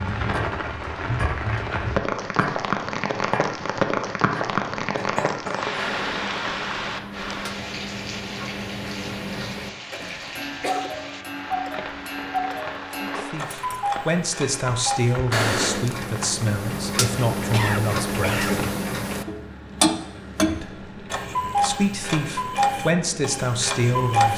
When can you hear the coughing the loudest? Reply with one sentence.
The volume of the coughing peaks at 18 seconds.